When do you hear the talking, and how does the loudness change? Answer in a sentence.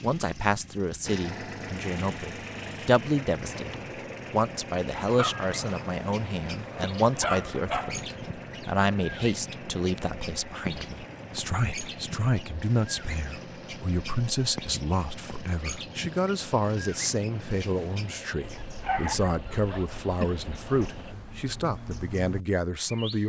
You can hear the talking from 0.0 to 23.2 s, at a steady volume.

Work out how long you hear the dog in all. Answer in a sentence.
You can hear the dog for 5 seconds altogether.